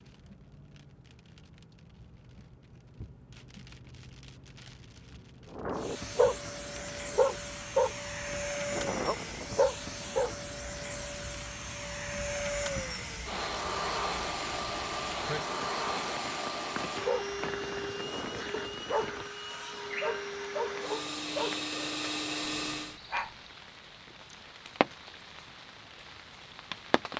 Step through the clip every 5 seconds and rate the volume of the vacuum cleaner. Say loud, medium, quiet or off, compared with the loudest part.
off, loud, loud, loud, loud, off.